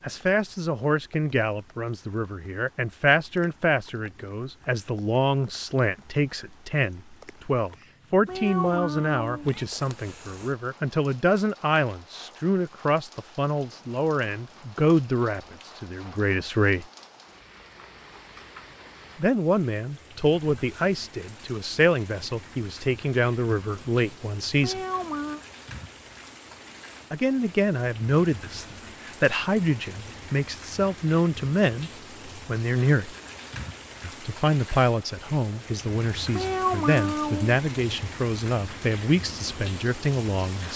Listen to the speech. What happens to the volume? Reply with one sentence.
The loudness of the speech stays about the same.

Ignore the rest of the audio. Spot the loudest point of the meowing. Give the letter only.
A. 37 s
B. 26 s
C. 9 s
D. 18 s
A.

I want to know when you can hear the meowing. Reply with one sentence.
You can hear the meowing from 8.2 to 9.7 s, from 24.6 to 25.4 s and from 36.3 to 37.6 s.